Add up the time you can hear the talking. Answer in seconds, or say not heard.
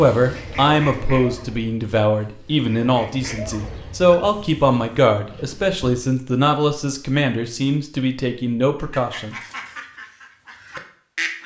9 s.